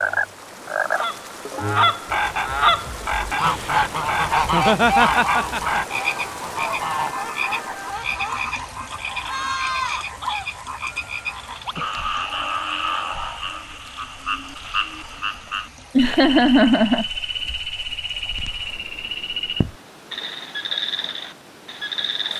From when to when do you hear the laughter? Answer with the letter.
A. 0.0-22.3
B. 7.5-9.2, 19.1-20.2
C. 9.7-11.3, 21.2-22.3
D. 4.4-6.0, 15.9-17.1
D.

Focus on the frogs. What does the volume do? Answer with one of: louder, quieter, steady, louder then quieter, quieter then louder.
steady.